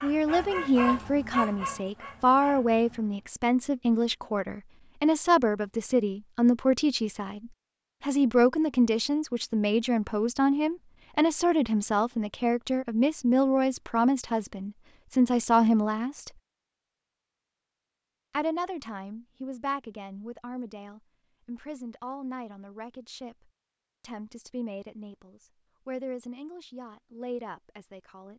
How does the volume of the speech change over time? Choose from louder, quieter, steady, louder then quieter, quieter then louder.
quieter.